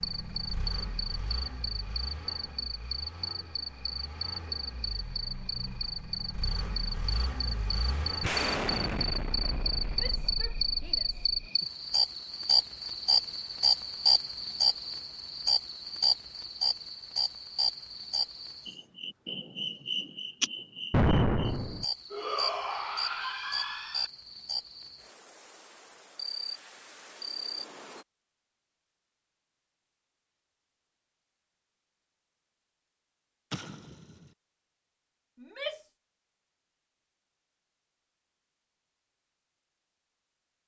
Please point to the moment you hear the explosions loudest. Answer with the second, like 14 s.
21 s.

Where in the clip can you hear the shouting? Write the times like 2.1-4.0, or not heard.
9.9-11.3, 22.1-24.1, 35.4-35.9.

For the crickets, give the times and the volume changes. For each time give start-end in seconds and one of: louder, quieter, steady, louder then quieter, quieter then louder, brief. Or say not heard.
0.0-28.1 louder then quieter.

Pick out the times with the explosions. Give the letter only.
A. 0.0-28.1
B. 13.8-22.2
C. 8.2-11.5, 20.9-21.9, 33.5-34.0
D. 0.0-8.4
C.